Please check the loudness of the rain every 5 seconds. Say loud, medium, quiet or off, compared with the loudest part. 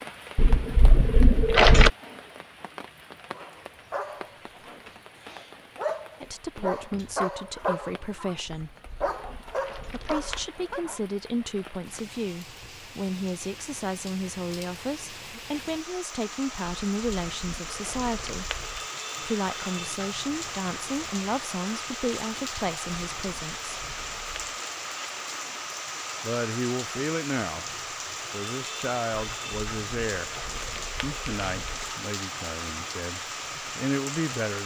medium, quiet, medium, loud, loud, loud, loud.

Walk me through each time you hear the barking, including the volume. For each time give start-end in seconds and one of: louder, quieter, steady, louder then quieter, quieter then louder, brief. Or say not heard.
3.3-8.3 quieter then louder
9.0-11.0 brief.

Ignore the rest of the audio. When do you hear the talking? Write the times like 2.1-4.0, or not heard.
6.2-8.8, 9.8-18.6, 19.2-23.7, 26.2-27.6, 28.3-30.4, 31.0-34.6.